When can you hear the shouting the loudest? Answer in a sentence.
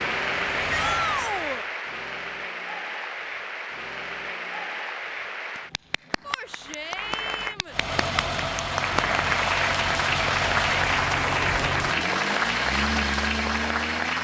The loudest moment of the shouting is at 1 second.